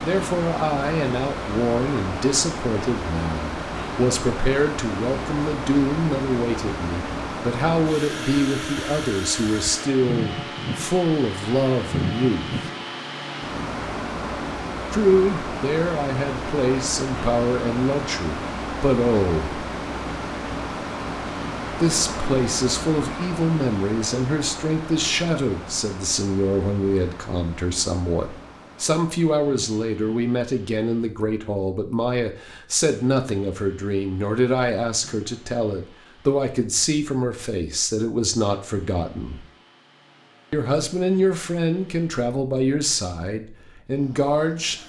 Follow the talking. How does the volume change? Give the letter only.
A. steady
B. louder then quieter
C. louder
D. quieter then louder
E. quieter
A.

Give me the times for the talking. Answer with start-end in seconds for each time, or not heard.
0.0-12.6, 14.9-19.6, 21.7-39.5, 40.5-44.8.